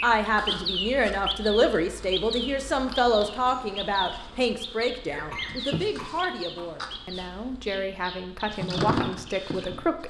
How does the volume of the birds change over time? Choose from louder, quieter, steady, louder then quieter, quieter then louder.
quieter.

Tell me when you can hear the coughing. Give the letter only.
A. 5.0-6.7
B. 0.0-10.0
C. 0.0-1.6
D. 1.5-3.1
A.